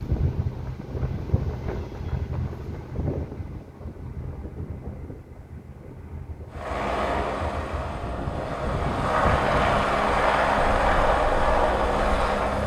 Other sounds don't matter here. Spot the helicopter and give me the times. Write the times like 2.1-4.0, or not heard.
6.5-12.6.